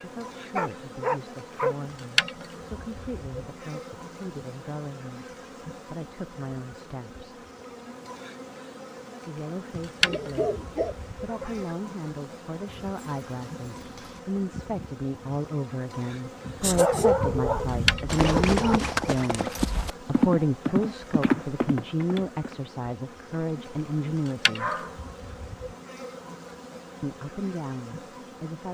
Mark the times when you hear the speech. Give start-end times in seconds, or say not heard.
0.0-7.2, 9.2-24.8, 27.0-28.6.